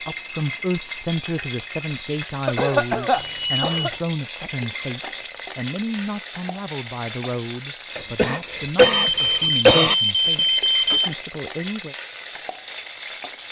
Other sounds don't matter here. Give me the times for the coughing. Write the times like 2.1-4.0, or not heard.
2.5-4.0, 8.0-9.9.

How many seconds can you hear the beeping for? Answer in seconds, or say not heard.
3 s.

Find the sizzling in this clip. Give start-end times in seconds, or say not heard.
0.0-13.4.